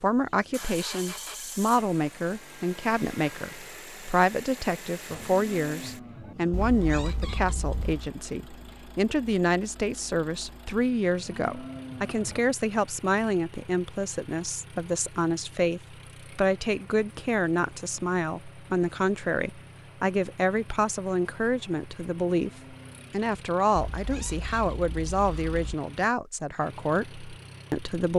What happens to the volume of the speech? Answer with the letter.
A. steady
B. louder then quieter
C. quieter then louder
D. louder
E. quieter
A.